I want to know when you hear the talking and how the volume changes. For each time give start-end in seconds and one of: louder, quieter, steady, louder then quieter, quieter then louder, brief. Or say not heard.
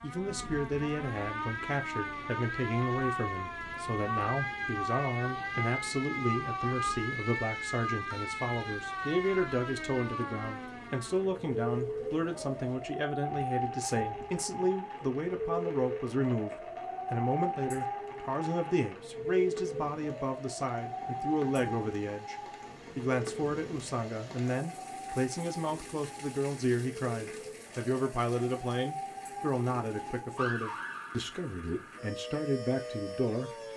0.0-33.5 steady.